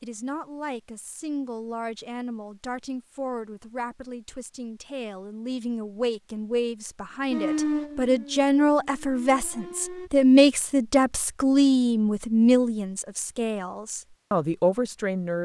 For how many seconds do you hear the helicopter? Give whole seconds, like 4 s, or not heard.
not heard.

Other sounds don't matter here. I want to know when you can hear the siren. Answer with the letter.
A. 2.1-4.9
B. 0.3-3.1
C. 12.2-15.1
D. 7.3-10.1
D.